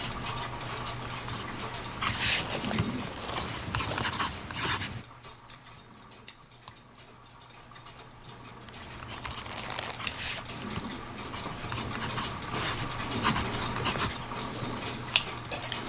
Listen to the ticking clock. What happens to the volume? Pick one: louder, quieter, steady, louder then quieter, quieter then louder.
quieter then louder.